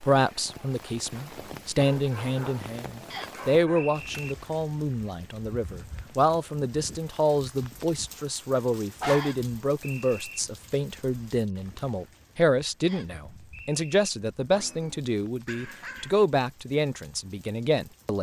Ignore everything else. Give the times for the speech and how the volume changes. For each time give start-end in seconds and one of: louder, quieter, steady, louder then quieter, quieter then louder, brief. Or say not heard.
0.0-18.1 steady.